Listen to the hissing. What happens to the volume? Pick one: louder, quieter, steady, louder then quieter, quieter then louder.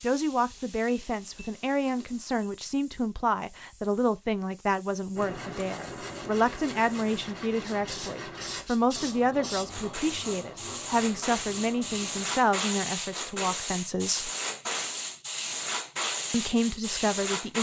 louder.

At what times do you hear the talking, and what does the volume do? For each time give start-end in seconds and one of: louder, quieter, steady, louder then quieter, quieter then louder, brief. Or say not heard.
0.0-14.3 steady
16.3-17.5 brief.